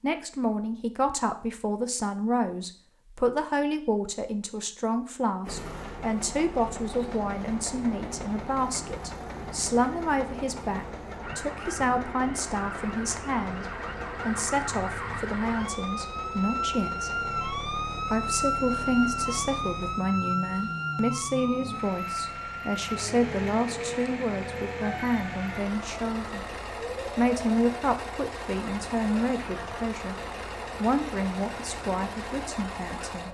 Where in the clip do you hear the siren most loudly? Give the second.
19 s.